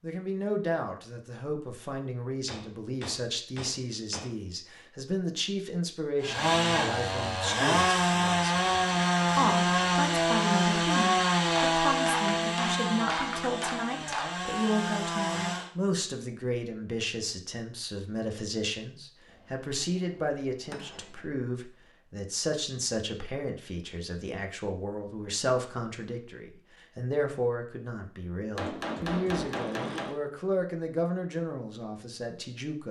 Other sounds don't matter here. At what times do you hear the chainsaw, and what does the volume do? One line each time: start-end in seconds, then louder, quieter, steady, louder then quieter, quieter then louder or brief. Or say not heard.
6.2-15.7 quieter.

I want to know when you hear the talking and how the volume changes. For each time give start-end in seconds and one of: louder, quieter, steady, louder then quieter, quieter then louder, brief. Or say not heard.
0.0-32.8 steady.